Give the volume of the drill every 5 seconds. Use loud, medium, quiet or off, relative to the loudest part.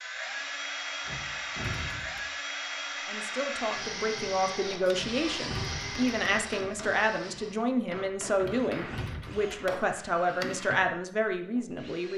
loud, medium, medium.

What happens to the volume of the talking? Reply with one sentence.
The loudness of the talking stays about the same.